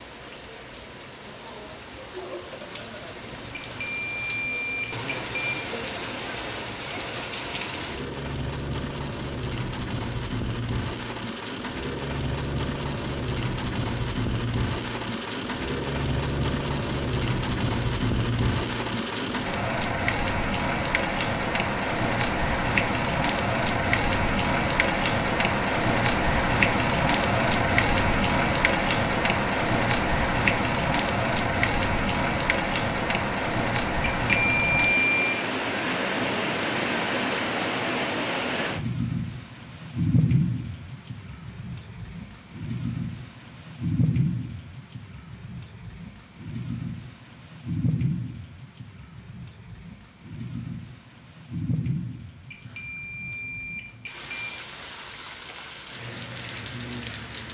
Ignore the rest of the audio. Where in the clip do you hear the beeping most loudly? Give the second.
35 s.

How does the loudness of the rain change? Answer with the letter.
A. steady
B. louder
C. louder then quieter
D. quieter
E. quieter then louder
C.